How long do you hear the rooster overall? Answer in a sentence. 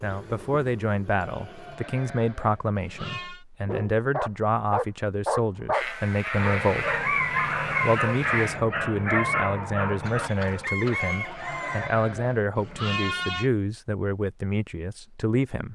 You can hear the rooster for 2 seconds altogether.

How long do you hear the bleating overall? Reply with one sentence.
The bleating can be heard for 8 seconds in total.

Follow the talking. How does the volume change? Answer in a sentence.
The loudness of the talking stays about the same.